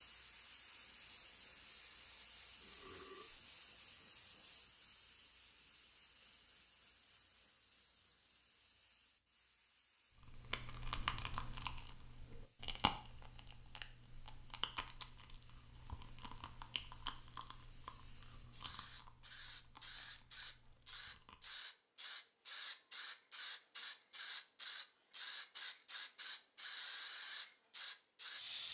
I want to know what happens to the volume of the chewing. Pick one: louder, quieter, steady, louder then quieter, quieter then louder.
quieter.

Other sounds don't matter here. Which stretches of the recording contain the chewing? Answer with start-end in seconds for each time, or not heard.
10.2-21.5.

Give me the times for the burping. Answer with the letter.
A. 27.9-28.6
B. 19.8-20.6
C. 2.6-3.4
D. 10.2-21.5
C.